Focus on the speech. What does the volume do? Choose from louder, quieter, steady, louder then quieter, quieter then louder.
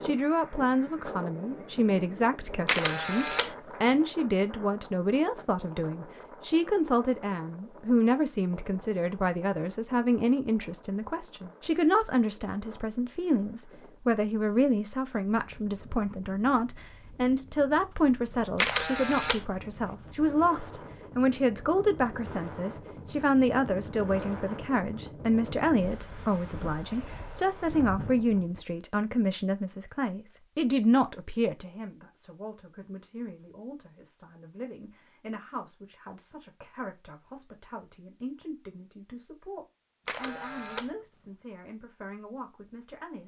quieter.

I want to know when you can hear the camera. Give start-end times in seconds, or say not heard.
2.6-3.5, 18.6-19.4, 40.0-40.9.